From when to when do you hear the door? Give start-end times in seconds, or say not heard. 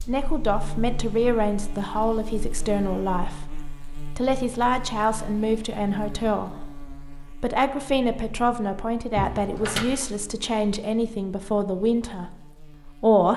9.2-9.8.